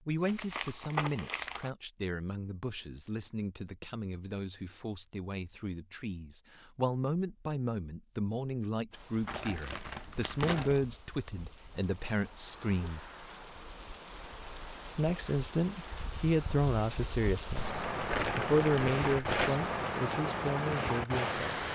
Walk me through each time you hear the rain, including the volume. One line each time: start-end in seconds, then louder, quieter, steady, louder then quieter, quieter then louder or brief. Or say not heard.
8.9-21.7 louder.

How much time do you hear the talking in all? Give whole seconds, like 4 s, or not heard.
20 s.